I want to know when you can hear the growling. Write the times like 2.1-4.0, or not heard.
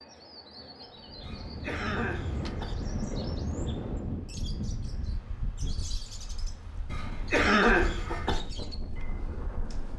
not heard.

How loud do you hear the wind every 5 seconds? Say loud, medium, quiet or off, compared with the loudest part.
loud, medium.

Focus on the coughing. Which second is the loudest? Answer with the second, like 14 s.
8 s.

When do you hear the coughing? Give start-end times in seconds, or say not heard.
1.2-2.8, 6.8-8.4.